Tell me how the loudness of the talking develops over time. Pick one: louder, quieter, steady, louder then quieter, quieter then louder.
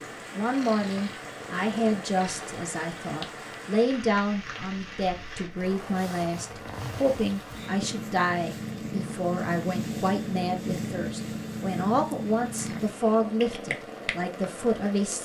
steady.